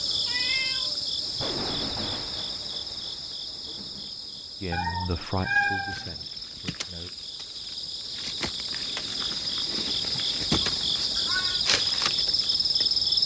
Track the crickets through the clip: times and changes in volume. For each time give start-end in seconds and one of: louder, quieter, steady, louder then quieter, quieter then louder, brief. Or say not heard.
0.0-13.2 quieter then louder.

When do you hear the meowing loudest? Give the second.
6 s.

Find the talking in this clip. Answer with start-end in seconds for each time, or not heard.
4.6-7.1.